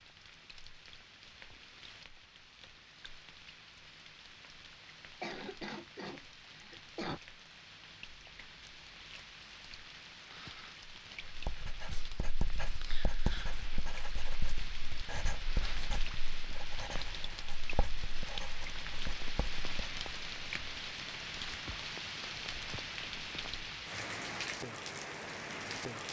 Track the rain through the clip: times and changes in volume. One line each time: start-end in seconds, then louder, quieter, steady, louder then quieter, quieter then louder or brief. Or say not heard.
0.0-26.0 louder.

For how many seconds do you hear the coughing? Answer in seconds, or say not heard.
2 s.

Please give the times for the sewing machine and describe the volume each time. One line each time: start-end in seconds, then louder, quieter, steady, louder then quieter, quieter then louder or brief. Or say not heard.
not heard.